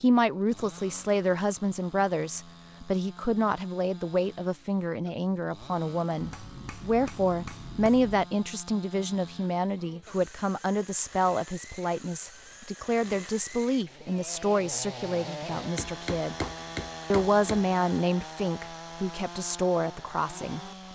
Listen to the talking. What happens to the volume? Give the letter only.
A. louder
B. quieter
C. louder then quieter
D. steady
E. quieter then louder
D.